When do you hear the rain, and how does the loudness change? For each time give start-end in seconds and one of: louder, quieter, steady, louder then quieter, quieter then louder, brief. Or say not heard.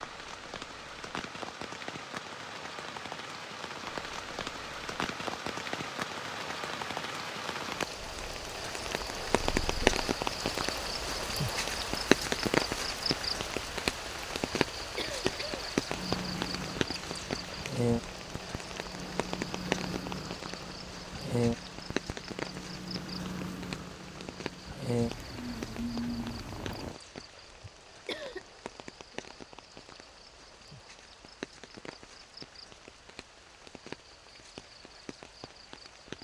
0.0-36.1 louder then quieter.